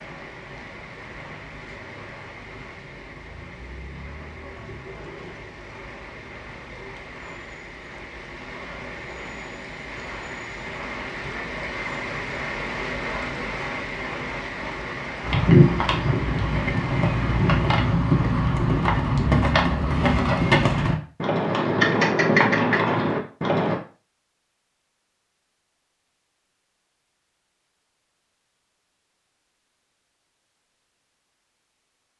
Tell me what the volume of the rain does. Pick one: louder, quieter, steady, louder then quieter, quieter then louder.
louder.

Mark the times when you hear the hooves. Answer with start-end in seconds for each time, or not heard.
15.2-23.8.